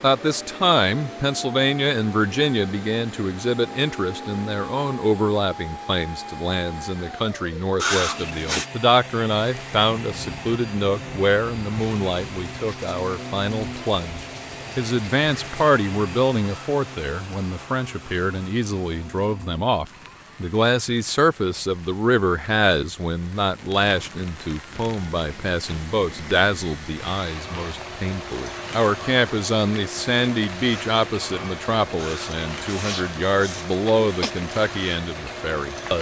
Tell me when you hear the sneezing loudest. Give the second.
8 s.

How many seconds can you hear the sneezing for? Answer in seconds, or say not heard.
3 s.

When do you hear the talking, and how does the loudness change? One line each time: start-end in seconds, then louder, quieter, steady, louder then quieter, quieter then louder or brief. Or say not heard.
0.0-35.9 steady.